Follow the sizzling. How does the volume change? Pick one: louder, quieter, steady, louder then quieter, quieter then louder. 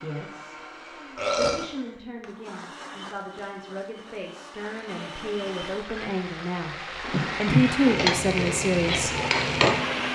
louder.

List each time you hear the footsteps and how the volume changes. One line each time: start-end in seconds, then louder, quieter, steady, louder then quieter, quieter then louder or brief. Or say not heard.
not heard.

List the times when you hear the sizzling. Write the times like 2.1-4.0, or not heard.
4.6-10.0.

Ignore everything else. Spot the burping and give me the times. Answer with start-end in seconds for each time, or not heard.
1.1-1.6, 7.1-8.1.